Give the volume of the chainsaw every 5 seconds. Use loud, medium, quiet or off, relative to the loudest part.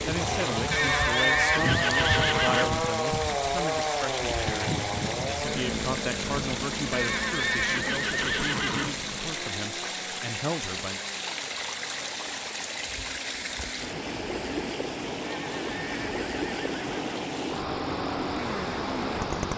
loud, medium, quiet, medium.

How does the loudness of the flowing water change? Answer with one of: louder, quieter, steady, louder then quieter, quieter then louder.
steady.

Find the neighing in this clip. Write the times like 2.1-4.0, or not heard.
0.7-2.7, 6.9-8.9, 15.2-17.2.